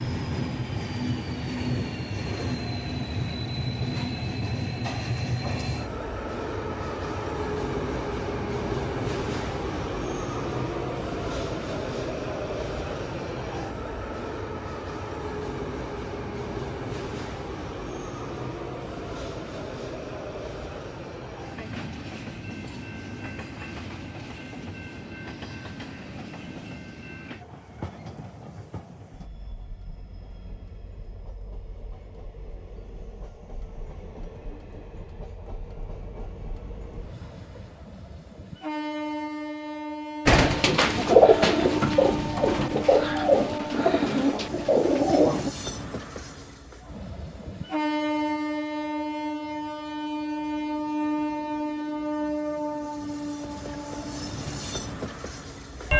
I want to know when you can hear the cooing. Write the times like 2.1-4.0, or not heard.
40.2-45.5.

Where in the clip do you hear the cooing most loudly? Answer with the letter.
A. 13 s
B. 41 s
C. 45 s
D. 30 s
B.